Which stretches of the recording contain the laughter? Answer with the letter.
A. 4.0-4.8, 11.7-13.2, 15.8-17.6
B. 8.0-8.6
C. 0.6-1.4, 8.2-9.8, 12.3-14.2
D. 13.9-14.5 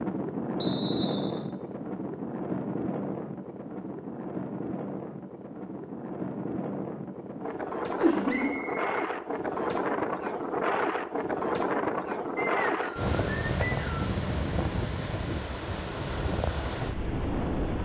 B.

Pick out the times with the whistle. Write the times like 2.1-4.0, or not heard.
0.6-1.4, 8.2-9.8, 12.3-14.2.